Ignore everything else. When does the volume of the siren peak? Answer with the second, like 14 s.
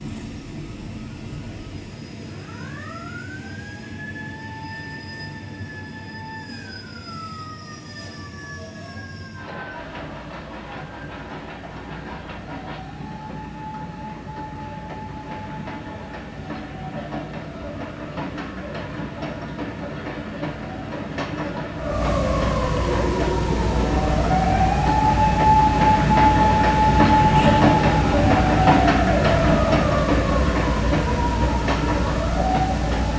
26 s.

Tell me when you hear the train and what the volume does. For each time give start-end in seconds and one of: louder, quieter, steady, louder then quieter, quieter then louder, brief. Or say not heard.
0.0-33.1 louder.